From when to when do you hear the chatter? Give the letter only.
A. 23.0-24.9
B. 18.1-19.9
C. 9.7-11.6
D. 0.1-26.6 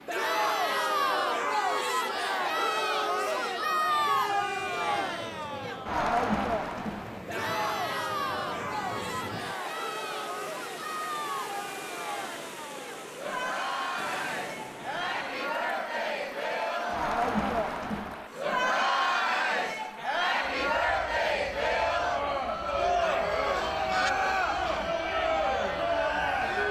D.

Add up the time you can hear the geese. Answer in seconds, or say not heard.
2 s.